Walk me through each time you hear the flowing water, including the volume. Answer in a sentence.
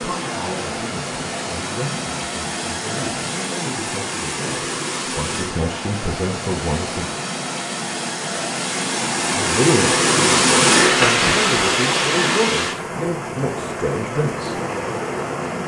The flowing water can be heard from 0.0 to 15.6 s, getting louder then quieter.